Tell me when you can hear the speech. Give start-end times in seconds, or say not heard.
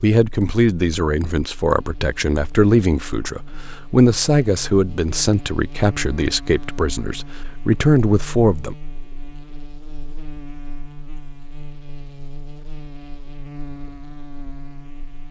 0.0-8.8.